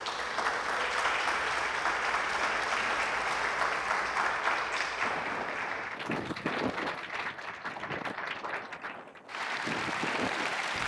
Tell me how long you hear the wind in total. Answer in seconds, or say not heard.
6 s.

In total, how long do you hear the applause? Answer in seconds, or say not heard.
11 s.